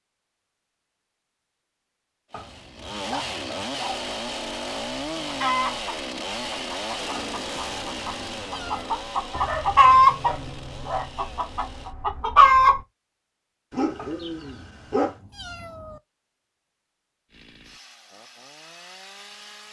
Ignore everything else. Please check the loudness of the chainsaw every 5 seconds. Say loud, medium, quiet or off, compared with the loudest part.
loud, loud, medium, quiet.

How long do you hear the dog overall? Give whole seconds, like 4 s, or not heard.
4 s.